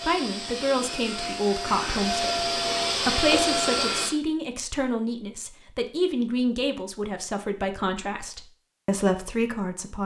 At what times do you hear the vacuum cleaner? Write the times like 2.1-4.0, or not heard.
0.0-4.2.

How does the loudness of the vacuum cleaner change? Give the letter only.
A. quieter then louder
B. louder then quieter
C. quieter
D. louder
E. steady
D.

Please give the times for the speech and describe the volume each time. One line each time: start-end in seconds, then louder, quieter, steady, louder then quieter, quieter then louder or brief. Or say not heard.
0.0-10.0 steady.